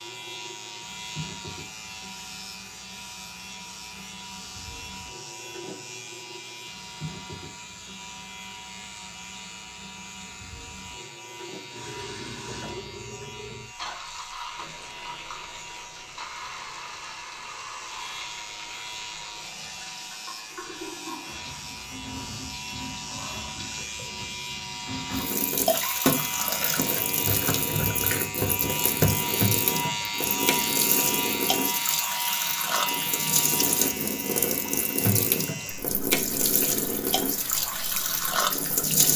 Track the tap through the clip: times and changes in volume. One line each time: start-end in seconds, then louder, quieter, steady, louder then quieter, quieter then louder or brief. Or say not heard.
0.0-39.1 louder.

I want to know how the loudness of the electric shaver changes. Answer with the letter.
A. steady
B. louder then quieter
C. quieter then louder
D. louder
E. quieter
D.